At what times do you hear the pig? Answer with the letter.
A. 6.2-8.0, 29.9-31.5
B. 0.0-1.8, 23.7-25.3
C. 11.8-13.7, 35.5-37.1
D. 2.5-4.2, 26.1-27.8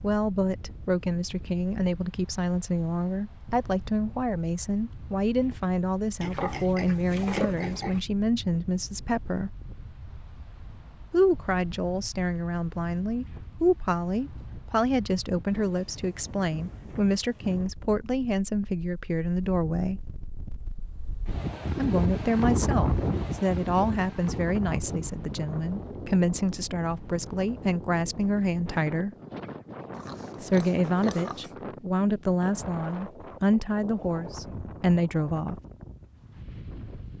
A.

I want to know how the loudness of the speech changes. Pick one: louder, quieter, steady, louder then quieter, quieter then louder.
steady.